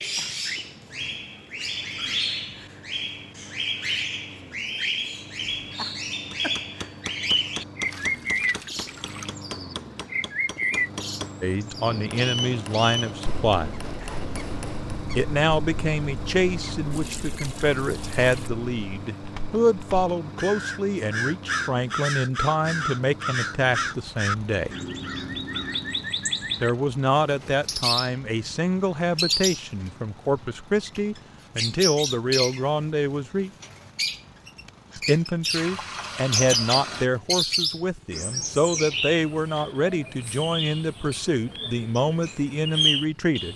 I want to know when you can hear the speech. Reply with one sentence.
You can hear the speech from 11.4 to 13.8 s, from 15.2 to 24.7 s, from 26.6 to 33.5 s and from 35.0 to 43.5 s.